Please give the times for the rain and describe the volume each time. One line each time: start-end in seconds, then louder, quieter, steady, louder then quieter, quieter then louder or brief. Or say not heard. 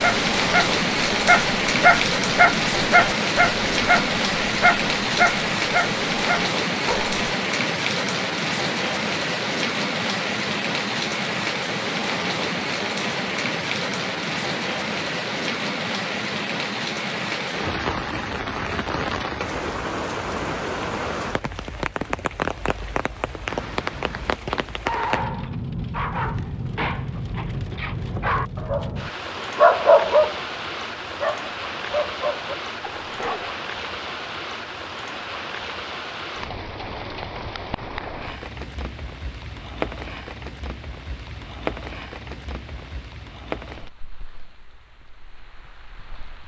0.0-46.4 quieter.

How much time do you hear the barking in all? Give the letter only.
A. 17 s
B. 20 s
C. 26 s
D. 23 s
A.